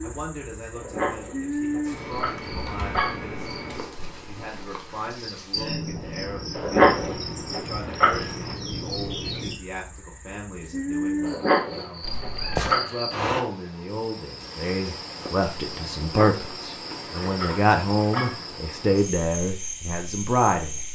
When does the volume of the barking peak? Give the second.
7 s.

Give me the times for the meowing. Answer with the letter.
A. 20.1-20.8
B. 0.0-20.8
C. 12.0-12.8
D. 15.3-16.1
C.